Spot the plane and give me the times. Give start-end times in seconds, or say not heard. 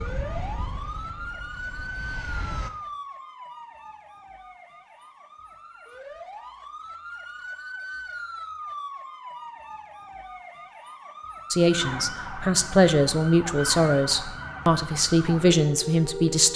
0.0-2.7.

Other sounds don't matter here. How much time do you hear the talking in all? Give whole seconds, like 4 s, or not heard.
5 s.